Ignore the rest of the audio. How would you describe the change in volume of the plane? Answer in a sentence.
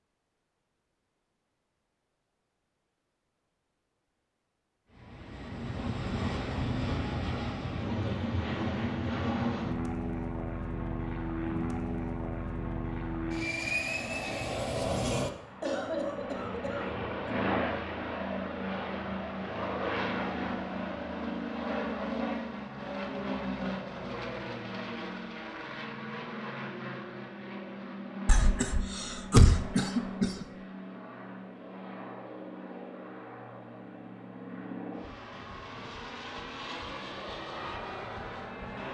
The volume of the plane goes down.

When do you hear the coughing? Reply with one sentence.
You can hear the coughing from 15.6 to 17.4 s and from 28.2 to 30.4 s.